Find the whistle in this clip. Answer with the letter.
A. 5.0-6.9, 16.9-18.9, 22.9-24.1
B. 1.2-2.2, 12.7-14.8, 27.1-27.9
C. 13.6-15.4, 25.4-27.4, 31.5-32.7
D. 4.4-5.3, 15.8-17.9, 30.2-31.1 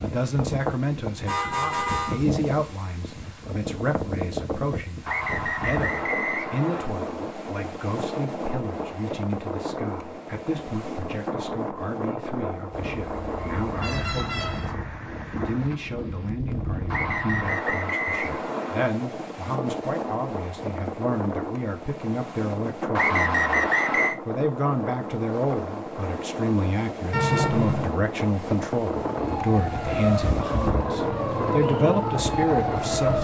A.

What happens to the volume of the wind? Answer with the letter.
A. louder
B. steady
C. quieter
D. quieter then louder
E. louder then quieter
B.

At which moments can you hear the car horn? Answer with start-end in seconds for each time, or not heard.
1.2-2.2, 12.7-14.8, 27.1-27.9.